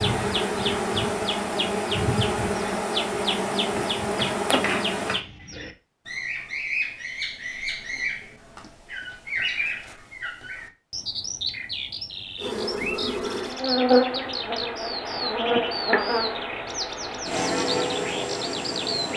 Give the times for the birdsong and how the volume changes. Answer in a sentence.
You can hear the birdsong from 0.0 to 19.1 s, at a steady volume.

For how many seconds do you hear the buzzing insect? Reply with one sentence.
The buzzing insect can be heard for 12 seconds in total.